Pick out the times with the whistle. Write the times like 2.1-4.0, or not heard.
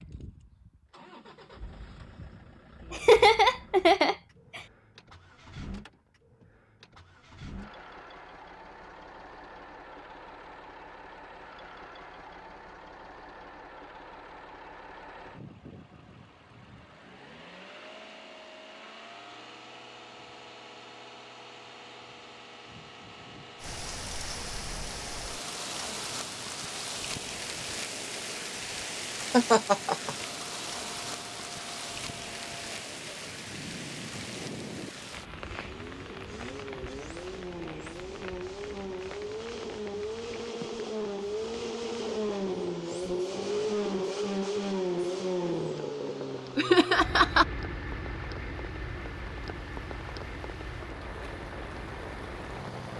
not heard.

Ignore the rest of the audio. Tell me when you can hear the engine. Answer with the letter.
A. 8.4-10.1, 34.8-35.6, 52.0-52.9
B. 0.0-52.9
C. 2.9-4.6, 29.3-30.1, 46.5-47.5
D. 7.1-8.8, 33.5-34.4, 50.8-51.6
B.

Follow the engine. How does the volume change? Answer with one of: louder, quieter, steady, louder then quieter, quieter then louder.
louder.